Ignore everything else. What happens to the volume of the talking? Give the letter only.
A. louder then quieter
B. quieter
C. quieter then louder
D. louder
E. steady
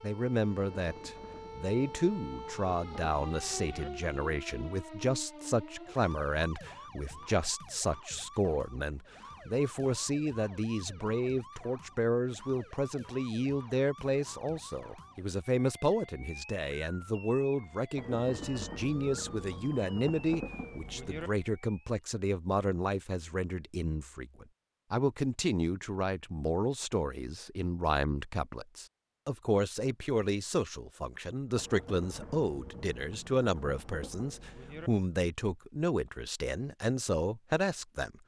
E.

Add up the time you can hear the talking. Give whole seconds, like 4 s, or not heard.
38 s.